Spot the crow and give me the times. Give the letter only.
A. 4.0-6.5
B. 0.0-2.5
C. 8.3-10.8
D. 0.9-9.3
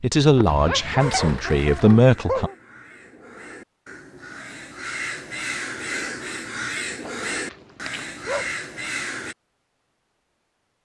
D.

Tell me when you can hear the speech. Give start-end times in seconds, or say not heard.
0.0-2.5.